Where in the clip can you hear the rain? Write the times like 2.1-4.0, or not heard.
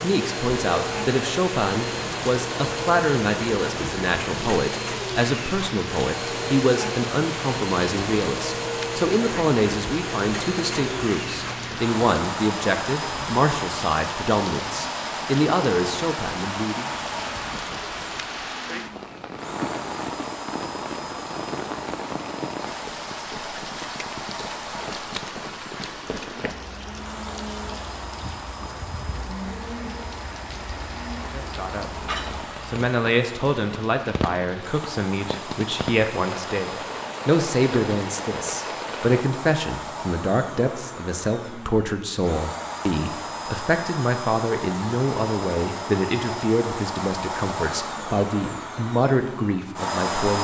0.0-39.3.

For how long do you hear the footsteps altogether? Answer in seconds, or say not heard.
not heard.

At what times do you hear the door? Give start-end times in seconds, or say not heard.
not heard.